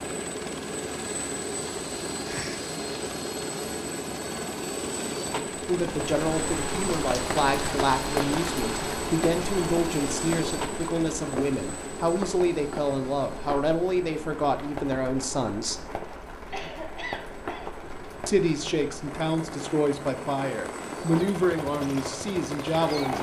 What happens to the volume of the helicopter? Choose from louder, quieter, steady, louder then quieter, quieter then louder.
quieter then louder.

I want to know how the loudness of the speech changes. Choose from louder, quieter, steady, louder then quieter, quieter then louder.
steady.